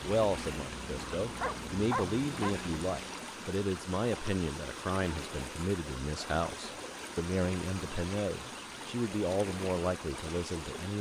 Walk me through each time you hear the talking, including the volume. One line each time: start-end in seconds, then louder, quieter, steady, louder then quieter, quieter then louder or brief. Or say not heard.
0.0-10.9 steady.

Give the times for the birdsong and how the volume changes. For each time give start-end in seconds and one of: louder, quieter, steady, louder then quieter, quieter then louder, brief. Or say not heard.
not heard.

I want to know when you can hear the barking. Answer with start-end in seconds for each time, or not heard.
1.0-2.5.